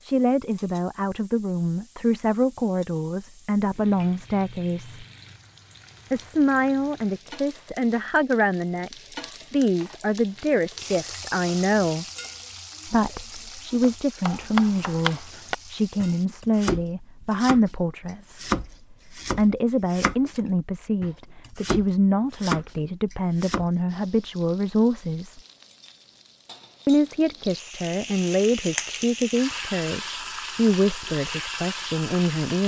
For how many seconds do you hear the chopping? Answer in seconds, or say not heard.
9 s.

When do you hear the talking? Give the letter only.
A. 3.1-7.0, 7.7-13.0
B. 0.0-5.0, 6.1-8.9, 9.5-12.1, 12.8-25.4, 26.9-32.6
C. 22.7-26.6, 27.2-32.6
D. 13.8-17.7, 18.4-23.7
B.